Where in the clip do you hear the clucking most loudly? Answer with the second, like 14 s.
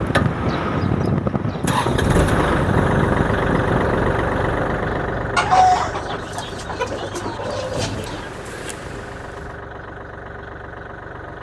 6 s.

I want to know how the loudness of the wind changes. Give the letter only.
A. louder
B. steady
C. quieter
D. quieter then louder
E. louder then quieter
C.